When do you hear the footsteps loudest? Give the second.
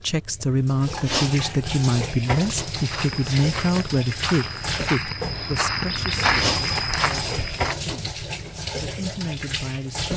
6 s.